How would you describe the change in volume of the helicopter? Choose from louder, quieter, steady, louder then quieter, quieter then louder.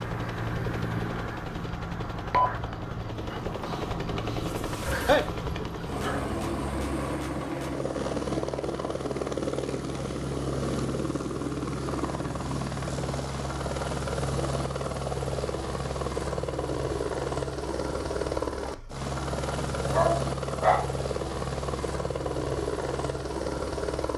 steady.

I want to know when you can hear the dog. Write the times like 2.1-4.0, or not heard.
4.8-6.3, 19.9-20.9.